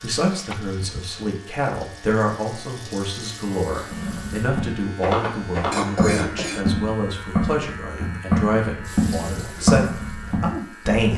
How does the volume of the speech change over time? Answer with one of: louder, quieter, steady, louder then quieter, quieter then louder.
steady.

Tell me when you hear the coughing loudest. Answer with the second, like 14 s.
6 s.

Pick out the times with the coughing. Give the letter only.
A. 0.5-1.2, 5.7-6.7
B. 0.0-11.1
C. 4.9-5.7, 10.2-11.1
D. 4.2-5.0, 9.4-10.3
A.